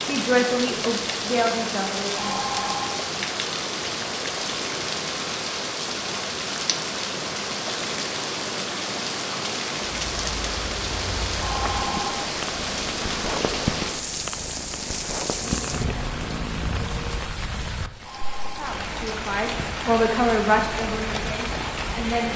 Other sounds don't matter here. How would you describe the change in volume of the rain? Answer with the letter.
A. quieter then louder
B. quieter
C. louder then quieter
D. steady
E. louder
D.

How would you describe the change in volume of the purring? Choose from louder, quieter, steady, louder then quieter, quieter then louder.
louder.